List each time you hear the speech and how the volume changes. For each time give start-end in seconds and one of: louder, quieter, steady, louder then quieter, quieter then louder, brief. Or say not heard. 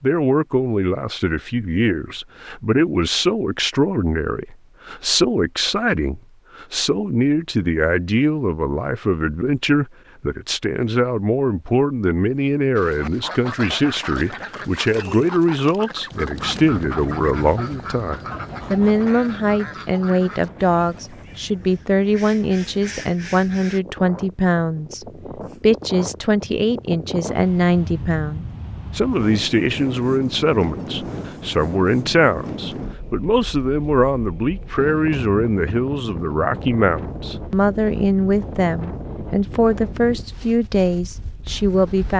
0.0-42.1 steady.